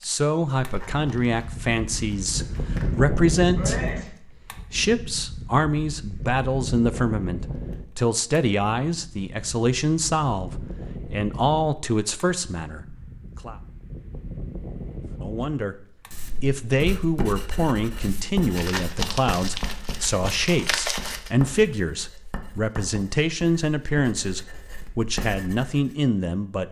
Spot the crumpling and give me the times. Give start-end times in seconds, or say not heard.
0.6-3.0, 18.6-21.3.